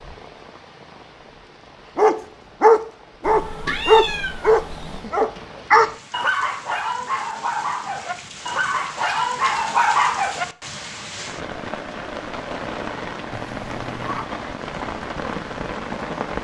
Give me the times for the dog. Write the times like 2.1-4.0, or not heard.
1.9-10.4.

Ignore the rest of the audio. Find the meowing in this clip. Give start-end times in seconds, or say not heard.
3.2-5.1, 13.3-14.3.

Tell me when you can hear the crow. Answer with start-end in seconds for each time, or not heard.
not heard.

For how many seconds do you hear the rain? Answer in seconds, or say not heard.
16 s.